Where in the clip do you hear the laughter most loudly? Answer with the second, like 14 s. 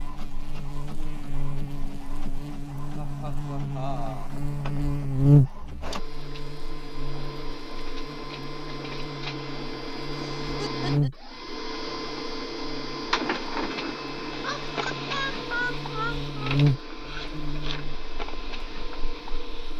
16 s.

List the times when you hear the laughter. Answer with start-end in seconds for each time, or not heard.
2.9-4.3, 10.2-11.1, 14.4-16.6.